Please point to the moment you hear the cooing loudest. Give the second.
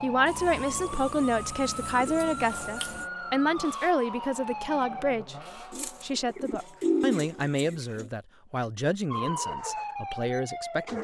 7 s.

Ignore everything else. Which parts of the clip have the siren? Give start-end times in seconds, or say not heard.
0.0-5.2, 9.1-10.9.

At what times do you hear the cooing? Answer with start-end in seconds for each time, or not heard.
0.2-3.0, 5.7-8.1.